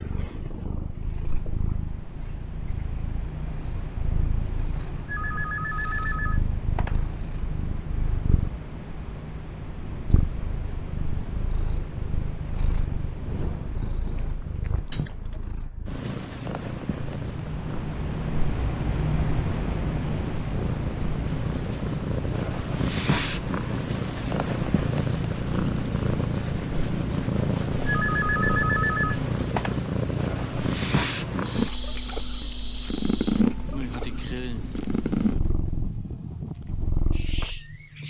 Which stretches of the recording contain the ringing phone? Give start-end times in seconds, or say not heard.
5.0-7.0, 14.9-15.4, 27.9-29.8.